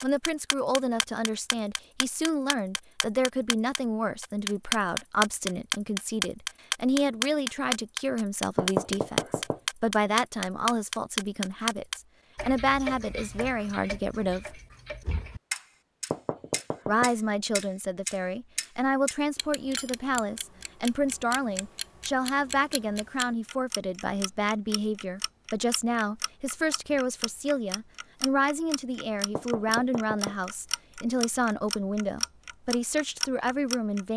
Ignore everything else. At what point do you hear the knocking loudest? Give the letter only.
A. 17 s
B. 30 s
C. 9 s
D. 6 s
C.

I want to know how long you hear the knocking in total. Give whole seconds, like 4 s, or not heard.
3 s.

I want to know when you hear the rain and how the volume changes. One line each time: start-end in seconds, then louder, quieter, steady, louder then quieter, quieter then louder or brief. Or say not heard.
not heard.